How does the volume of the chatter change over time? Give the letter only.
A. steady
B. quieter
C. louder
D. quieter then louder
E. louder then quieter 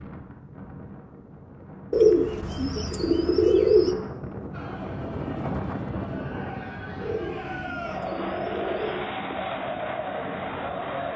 C.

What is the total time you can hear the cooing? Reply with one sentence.
The cooing can be heard for 4 seconds in total.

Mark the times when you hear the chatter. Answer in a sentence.
You can hear the chatter from 4.5 to 11.1 s.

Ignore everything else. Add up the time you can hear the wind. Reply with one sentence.
You can hear the wind for 11 seconds altogether.